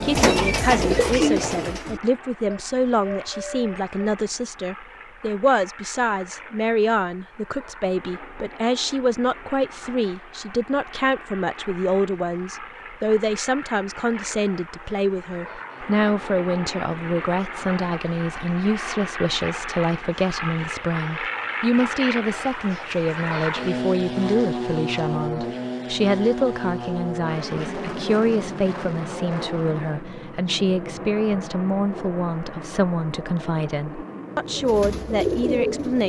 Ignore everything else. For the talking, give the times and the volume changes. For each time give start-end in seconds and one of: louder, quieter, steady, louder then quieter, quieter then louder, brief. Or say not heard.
0.0-36.0 steady.